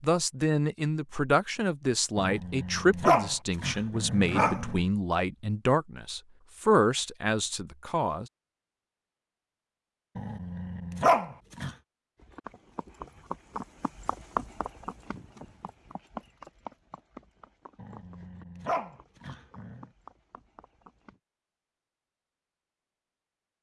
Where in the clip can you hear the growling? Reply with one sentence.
The growling can be heard from 2.1 to 4.8 s, from 10.2 to 11.7 s and from 17.8 to 19.9 s.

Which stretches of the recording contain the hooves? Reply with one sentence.
You can hear the hooves from 12.2 to 21.2 s.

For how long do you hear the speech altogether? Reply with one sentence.
The speech can be heard for 8 seconds in total.